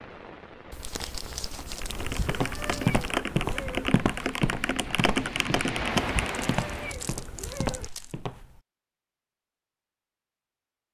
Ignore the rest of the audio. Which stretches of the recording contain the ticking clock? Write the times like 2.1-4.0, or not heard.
not heard.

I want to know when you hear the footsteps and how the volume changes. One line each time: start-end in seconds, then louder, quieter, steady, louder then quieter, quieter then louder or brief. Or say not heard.
2.1-8.6 quieter.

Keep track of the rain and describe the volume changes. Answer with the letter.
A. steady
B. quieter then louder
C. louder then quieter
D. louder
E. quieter
D.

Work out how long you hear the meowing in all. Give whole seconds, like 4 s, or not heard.
4 s.